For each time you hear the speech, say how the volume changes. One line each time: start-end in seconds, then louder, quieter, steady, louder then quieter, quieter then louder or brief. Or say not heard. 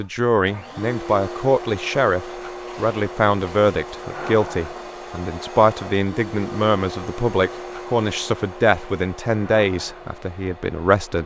0.0-11.2 steady.